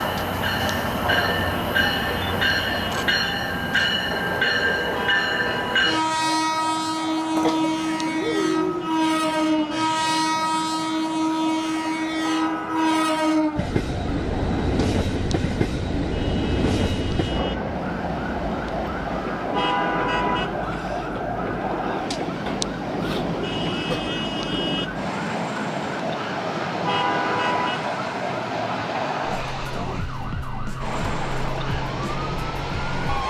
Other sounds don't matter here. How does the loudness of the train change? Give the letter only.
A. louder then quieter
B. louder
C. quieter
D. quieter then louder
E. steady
C.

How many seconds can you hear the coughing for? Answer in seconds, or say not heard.
3 s.